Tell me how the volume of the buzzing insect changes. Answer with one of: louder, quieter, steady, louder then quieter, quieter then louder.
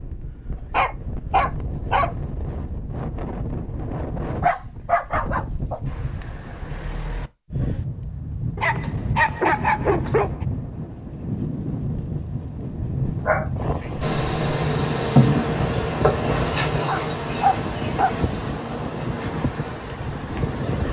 quieter.